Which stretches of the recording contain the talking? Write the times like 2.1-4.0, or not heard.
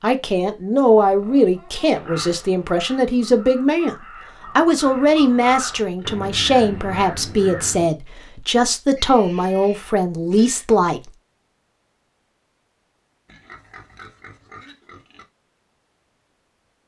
0.0-4.0, 4.5-11.1.